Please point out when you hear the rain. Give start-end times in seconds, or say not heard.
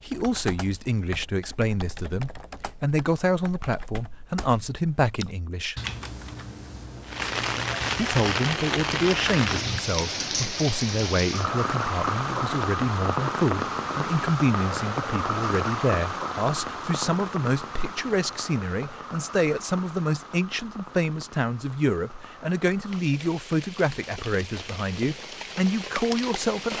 7.0-26.7.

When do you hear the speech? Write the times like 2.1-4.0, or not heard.
0.0-5.8, 8.0-26.7.